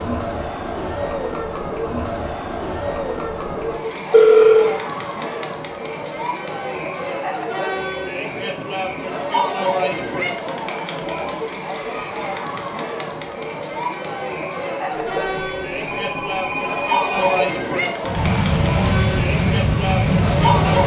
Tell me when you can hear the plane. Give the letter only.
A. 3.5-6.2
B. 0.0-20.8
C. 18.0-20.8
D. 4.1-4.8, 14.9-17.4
C.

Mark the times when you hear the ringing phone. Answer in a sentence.
You can hear the ringing phone from 4.1 to 4.8 s and from 14.9 to 17.4 s.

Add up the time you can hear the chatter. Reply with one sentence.
You can hear the chatter for 21 seconds altogether.